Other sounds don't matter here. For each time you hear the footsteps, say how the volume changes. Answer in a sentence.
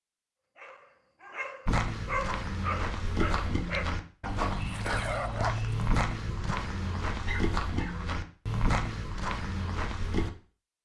You can hear the footsteps from 1.6 to 10.3 s, at a steady volume.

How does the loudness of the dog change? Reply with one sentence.
The loudness of the dog goes up, then down.